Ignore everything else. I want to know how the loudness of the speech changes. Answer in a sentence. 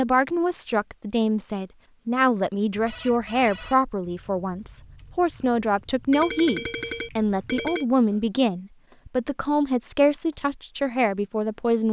The volume of the speech stays about the same.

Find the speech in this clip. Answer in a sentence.
You can hear the speech from 0.0 to 11.8 s.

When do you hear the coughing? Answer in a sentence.
You can't hear the coughing here.